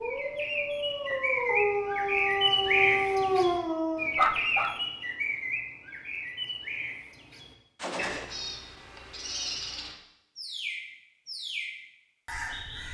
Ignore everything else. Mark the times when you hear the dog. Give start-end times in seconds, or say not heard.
0.0-4.8.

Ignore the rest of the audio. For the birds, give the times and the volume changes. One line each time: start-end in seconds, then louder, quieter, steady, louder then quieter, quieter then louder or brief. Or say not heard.
0.0-12.8 quieter.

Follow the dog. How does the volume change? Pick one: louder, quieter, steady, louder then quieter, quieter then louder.
louder.